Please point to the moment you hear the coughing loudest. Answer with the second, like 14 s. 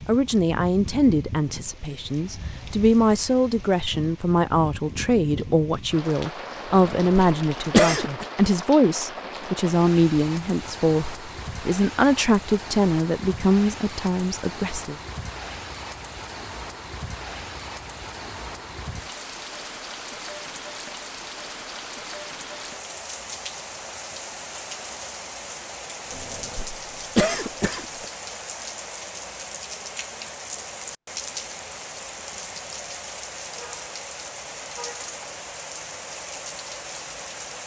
8 s.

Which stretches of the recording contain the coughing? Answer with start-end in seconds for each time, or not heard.
6.7-8.2, 26.1-28.1.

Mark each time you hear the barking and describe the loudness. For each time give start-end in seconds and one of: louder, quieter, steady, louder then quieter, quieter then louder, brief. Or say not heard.
not heard.